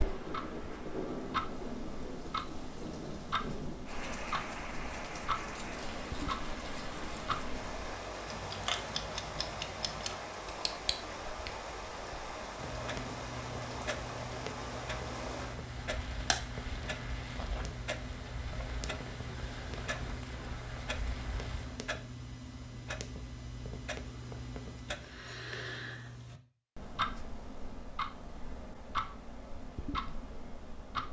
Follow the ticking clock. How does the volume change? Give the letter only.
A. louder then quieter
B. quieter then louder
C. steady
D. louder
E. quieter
C.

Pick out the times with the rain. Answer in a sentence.
You can hear the rain from 0.0 to 21.9 s.